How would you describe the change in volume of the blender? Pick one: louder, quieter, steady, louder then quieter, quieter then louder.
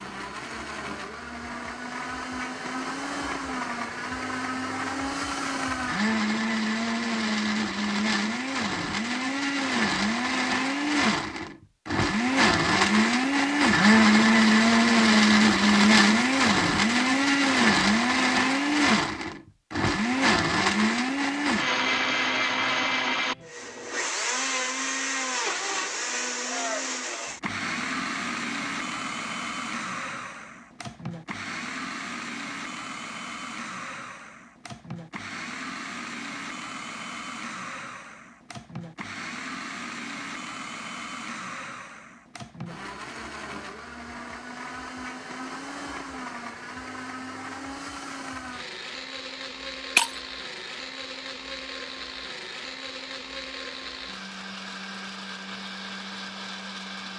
louder then quieter.